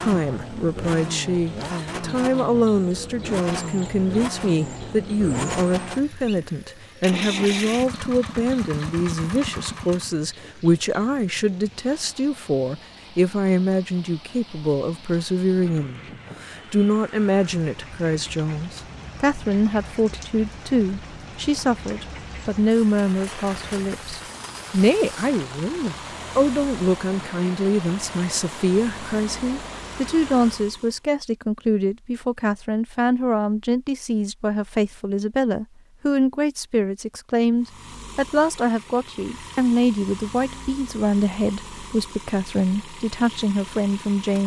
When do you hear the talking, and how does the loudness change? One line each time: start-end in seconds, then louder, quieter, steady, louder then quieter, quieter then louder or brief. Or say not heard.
0.0-44.4 steady.